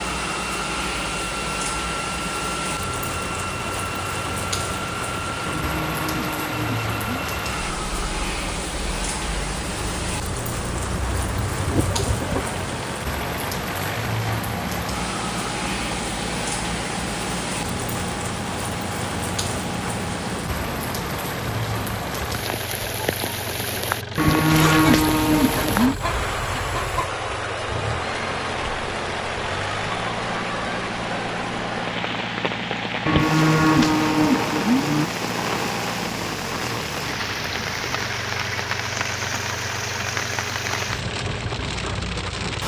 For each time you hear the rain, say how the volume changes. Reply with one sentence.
The rain can be heard from 0.0 to 42.6 s, at a steady volume.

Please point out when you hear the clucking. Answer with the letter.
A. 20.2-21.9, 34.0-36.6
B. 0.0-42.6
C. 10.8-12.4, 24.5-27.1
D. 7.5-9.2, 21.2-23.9
C.